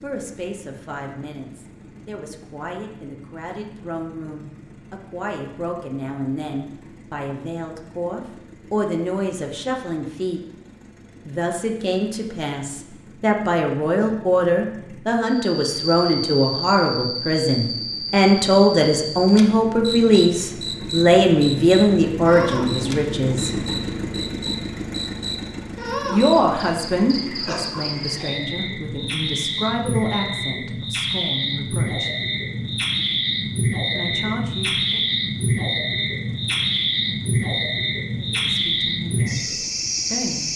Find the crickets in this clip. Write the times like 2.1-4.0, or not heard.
15.2-40.5.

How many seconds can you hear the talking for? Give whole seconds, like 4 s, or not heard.
32 s.